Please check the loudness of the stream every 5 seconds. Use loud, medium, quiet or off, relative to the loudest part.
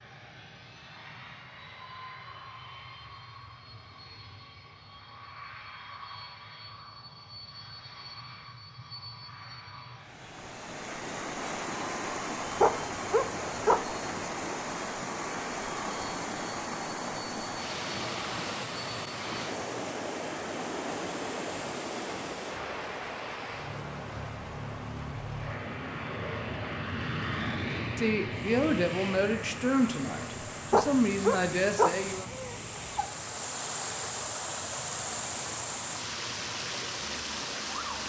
off, off, loud, loud, loud, quiet, loud, loud.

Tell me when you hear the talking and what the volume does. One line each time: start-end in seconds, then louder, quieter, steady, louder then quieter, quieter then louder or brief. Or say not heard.
27.9-32.3 steady.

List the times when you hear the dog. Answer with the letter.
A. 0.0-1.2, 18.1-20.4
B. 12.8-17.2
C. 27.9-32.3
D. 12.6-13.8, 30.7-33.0
D.